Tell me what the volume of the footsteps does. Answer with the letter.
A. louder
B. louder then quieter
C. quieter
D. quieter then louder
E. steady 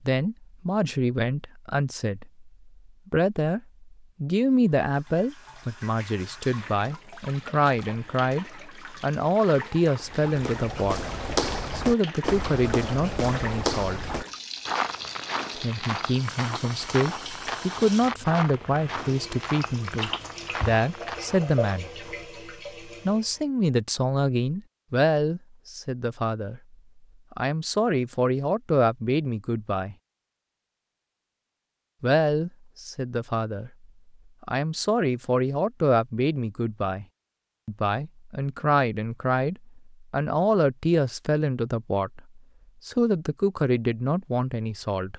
C.